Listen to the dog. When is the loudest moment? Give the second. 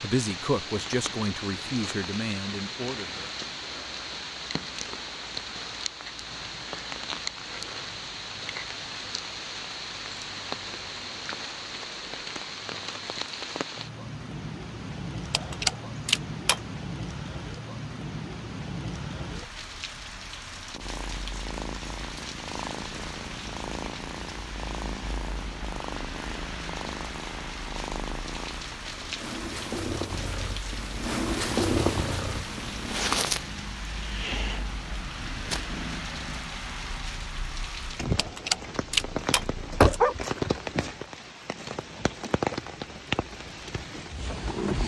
40 s.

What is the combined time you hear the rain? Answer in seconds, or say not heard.
45 s.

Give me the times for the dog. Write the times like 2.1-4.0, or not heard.
15.3-16.6, 38.1-40.1.